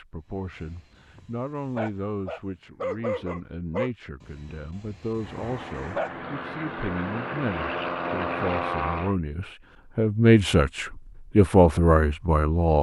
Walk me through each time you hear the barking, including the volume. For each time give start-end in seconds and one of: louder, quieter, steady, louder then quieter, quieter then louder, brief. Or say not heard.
0.3-6.1 louder then quieter.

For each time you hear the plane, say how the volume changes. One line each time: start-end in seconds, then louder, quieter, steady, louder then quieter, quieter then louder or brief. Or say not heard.
5.2-9.2 louder.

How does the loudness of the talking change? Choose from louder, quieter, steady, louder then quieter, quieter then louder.
louder.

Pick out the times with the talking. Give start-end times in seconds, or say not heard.
0.0-12.7.